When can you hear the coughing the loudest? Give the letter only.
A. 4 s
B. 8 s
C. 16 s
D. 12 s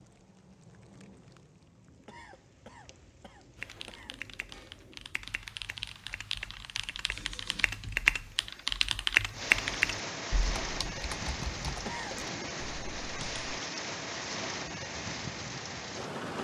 D.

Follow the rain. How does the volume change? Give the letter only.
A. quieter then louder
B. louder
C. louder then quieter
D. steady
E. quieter
B.